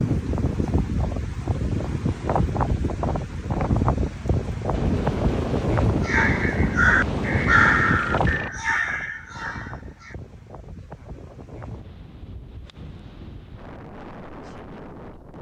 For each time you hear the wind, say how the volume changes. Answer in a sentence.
The wind can be heard from 0.0 to 15.3 s, getting quieter.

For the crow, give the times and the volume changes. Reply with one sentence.
The crow can be heard from 6.0 to 10.2 s, getting quieter.